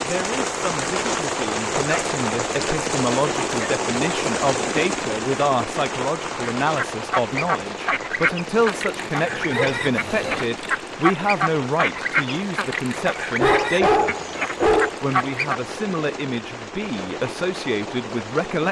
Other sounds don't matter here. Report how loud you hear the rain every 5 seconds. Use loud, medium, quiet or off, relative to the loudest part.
loud, medium, medium, medium.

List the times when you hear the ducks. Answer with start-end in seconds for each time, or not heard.
6.4-15.6.